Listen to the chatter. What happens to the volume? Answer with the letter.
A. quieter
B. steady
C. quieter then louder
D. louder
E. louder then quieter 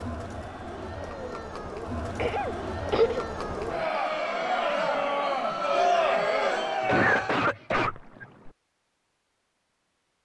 D.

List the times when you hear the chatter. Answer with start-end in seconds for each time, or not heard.
0.0-7.5.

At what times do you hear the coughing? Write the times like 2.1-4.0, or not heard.
2.1-3.2, 6.8-8.5.